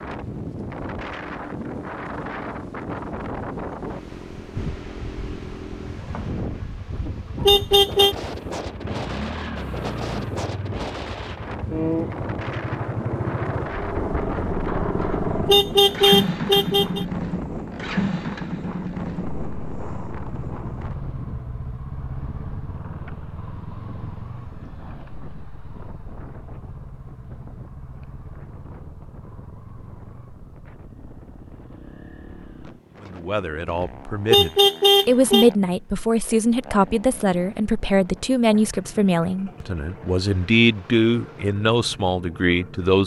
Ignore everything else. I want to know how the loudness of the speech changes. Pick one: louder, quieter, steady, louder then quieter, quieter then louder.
steady.